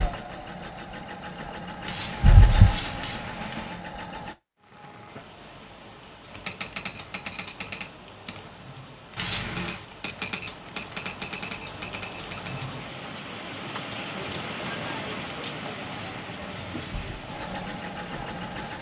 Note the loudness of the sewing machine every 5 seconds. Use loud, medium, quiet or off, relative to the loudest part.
loud, off, off, medium.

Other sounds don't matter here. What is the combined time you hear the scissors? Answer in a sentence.
The scissors can be heard for 4 seconds in total.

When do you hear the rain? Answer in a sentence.
You can hear the rain from 4.5 to 18.7 s.